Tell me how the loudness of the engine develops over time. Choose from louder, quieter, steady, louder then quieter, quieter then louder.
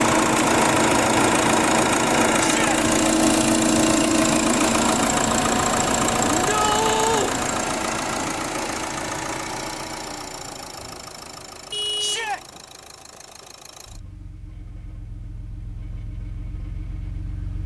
quieter.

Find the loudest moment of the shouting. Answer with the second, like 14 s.
7 s.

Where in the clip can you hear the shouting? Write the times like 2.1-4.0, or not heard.
2.4-2.8, 6.3-7.3, 11.9-12.4.